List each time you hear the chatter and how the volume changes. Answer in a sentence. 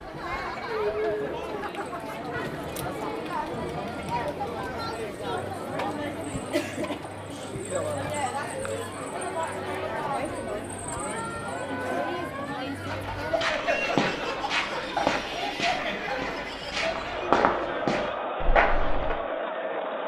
You can hear the chatter from 0.0 to 20.0 s, at a steady volume.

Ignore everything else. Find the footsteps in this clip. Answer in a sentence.
You can hear the footsteps from 12.8 to 19.1 s.